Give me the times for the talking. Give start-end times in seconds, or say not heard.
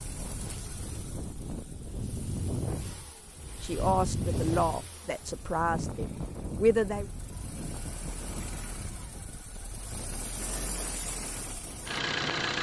3.6-7.1.